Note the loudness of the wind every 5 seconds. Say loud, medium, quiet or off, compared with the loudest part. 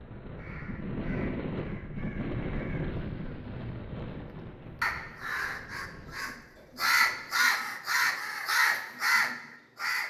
loud, quiet.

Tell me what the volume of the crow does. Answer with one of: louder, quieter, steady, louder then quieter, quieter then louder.
louder.